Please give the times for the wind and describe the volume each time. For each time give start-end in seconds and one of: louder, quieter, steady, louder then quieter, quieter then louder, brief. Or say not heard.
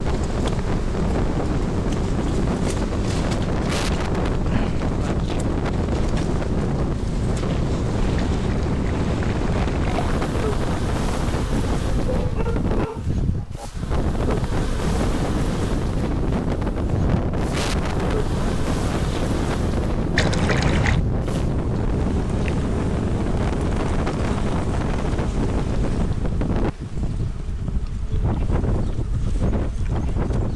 0.0-30.5 steady.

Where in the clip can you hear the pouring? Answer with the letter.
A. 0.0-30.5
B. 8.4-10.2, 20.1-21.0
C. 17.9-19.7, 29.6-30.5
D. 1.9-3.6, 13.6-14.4
B.